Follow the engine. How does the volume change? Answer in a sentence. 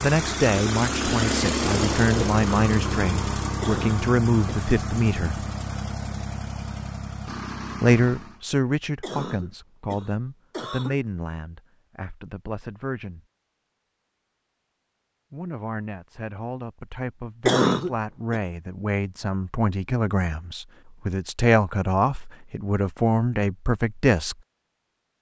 The loudness of the engine goes down.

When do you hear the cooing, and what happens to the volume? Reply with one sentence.
You can't hear the cooing here.